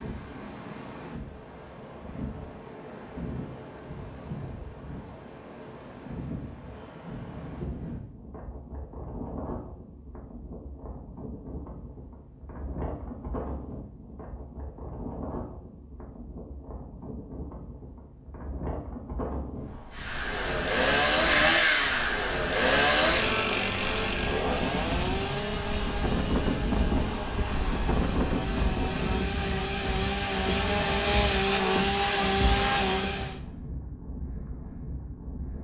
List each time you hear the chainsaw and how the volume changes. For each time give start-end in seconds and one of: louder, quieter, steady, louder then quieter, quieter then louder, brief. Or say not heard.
19.9-33.4 quieter then louder.